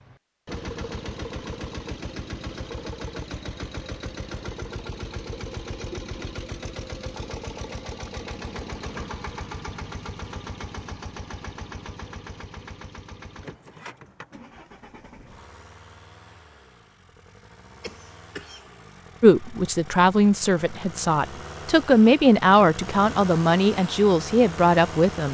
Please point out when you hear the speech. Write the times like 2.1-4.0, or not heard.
19.2-25.2.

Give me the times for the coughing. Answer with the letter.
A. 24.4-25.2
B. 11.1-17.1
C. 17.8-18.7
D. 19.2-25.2
C.